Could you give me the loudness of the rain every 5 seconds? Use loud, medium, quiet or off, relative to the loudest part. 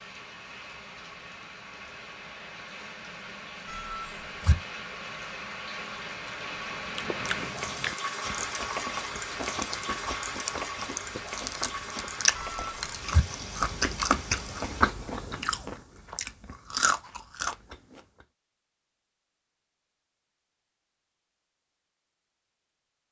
medium, loud, loud, off, off.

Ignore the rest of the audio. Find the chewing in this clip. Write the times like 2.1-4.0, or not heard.
6.8-18.2.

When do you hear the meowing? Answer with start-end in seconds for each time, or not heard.
3.6-4.5, 12.3-13.2.